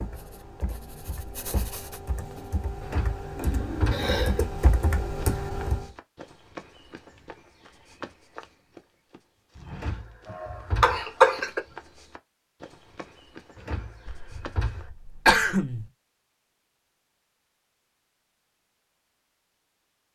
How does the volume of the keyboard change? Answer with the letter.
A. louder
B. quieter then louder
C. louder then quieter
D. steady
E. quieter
A.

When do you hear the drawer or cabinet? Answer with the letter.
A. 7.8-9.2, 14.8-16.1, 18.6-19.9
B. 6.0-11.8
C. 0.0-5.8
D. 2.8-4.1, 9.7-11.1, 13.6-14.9
D.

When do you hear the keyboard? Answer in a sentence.
The keyboard can be heard from 0.0 to 5.8 s.